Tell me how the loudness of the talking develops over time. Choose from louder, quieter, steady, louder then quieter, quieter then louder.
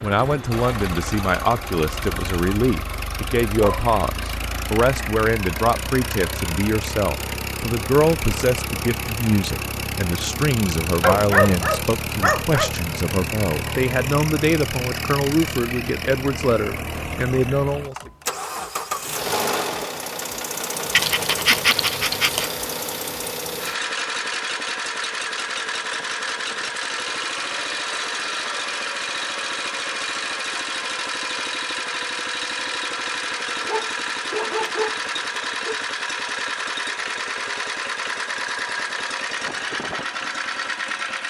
steady.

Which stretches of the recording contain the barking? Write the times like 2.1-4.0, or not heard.
3.5-4.6, 11.0-12.7, 20.9-22.5, 33.5-35.8.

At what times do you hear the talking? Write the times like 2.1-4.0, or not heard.
0.0-18.1.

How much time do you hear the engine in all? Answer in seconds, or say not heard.
41 s.